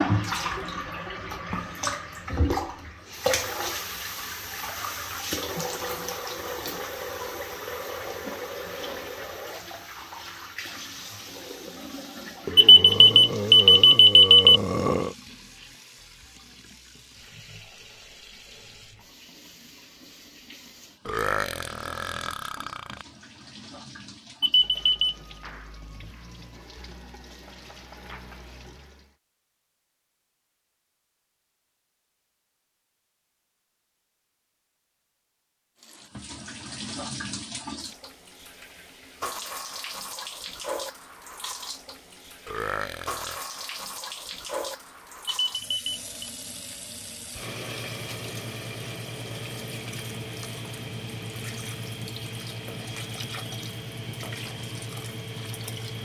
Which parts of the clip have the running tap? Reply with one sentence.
You can hear the running tap from 0.0 to 29.1 s and from 35.8 to 56.0 s.